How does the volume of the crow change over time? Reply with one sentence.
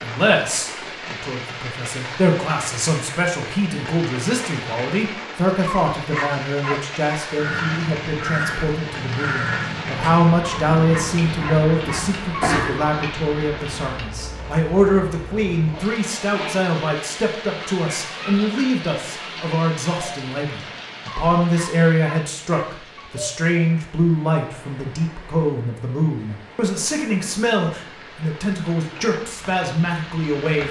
The volume of the crow stays about the same.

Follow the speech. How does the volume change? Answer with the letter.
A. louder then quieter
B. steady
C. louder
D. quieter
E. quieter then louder
B.